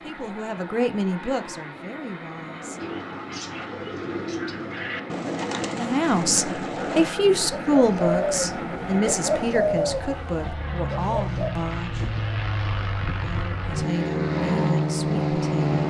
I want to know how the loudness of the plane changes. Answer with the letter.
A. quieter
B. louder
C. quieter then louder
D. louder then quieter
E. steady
B.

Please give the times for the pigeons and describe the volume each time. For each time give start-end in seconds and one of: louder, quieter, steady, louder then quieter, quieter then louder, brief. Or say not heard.
2.8-11.5 louder.